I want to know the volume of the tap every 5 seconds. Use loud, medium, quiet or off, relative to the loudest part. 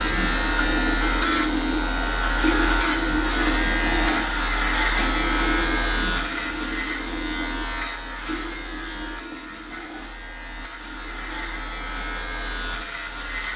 loud, medium, quiet.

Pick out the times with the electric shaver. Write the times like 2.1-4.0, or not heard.
0.0-13.5.